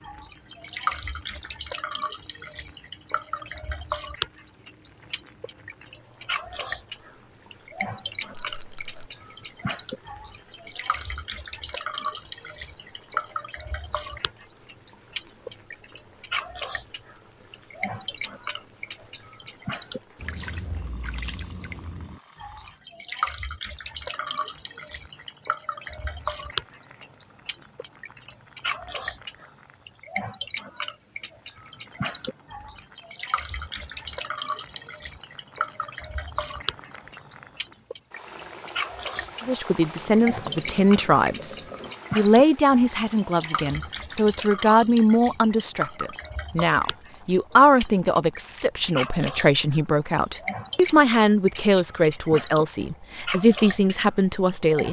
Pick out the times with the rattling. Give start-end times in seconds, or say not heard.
8.3-9.1.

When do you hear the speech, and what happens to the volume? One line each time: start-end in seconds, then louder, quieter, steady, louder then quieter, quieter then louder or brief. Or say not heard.
39.5-54.8 steady.